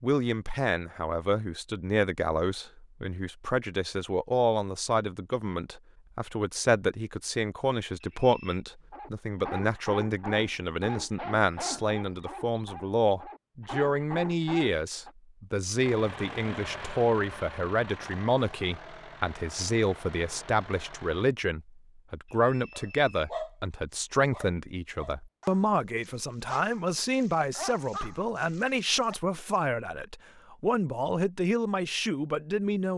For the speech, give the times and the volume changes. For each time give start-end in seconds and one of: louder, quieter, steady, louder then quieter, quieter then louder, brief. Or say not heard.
0.0-32.9 steady.